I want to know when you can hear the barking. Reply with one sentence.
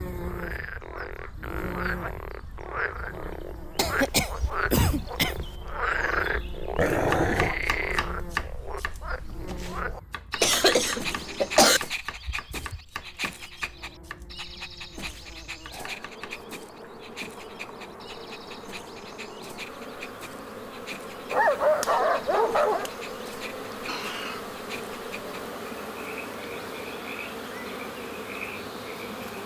The barking can be heard from 6.8 to 7.6 s and from 21.3 to 22.9 s.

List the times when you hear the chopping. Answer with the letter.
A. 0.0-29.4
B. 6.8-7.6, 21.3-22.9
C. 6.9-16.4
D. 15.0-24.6
C.